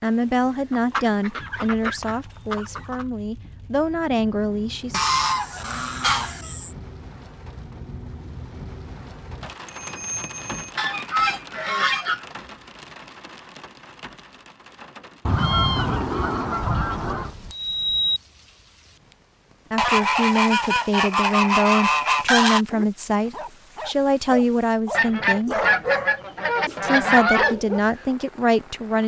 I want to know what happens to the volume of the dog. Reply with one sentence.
The volume of the dog goes up, then down.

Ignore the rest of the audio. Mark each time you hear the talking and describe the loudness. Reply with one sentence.
You can hear the talking from 0.0 to 5.0 s, getting quieter then louder; from 19.7 to 25.6 s, at a steady volume; and briefly from 26.8 to 29.0 s.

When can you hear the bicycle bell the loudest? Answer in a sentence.
The volume of the bicycle bell peaks at 18 seconds.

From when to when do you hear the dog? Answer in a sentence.
The dog can be heard from 22.6 to 27.8 s.